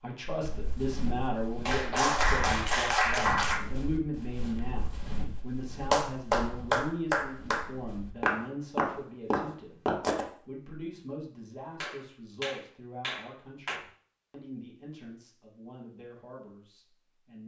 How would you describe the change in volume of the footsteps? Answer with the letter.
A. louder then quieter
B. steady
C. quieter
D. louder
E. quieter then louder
E.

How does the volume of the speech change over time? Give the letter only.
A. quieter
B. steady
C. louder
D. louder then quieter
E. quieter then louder
A.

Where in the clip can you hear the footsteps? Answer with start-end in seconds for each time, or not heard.
0.4-10.2.